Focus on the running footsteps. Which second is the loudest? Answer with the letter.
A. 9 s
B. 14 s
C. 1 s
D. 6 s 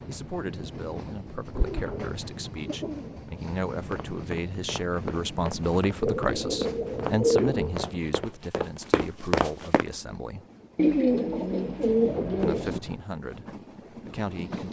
A.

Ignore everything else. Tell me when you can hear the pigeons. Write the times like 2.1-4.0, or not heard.
1.6-3.1, 6.0-8.0, 10.8-12.8.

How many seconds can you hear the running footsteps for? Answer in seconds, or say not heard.
6 s.